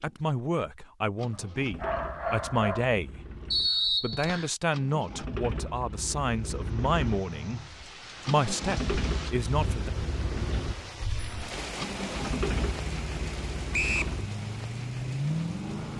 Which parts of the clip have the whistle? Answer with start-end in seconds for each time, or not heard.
3.5-4.5, 13.7-14.2.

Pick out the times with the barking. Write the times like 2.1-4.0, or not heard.
1.3-2.9.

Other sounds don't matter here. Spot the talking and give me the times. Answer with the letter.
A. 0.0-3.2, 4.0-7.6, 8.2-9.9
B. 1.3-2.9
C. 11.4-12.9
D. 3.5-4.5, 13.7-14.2
A.